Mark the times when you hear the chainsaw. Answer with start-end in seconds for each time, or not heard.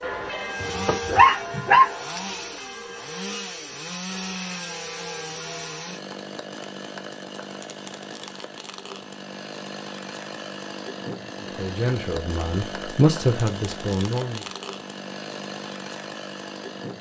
0.1-16.9.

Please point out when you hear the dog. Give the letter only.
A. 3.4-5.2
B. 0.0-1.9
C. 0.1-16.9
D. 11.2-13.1
B.